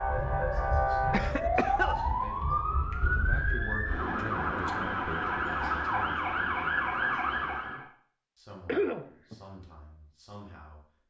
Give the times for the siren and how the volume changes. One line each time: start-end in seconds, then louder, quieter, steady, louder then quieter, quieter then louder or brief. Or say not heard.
0.0-7.8 steady.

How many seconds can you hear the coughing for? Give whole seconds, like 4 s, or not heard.
2 s.